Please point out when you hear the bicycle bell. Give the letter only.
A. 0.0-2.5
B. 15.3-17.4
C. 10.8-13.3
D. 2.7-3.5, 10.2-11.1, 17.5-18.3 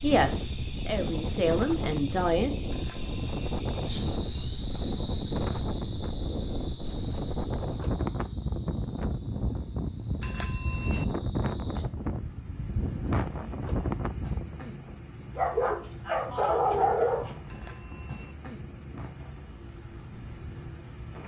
D.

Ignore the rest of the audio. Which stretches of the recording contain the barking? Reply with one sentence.
You can hear the barking from 15.3 to 17.4 s.